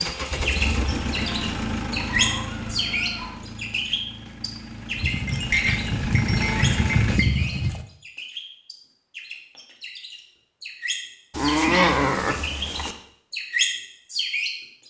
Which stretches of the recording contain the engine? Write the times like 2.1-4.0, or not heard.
0.0-7.2.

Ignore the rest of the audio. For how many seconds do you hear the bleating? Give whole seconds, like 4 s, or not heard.
6 s.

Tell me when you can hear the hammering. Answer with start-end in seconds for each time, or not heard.
not heard.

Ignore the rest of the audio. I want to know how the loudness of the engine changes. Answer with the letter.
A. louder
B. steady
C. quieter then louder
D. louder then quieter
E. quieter
C.